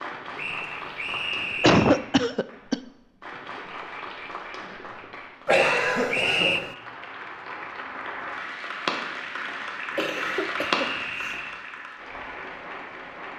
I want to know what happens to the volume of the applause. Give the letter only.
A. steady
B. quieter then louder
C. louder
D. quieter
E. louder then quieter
C.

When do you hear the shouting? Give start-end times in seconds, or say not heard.
not heard.